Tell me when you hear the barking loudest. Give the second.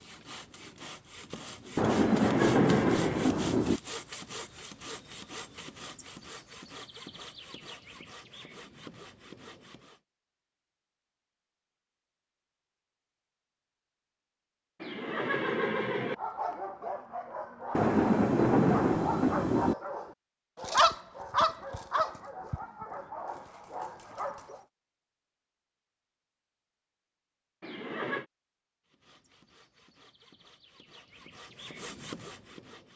21 s.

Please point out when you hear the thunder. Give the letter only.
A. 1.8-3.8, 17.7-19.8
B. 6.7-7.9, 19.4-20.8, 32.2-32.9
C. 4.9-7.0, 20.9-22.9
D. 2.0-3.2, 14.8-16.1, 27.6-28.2
A.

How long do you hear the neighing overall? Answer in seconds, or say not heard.
3 s.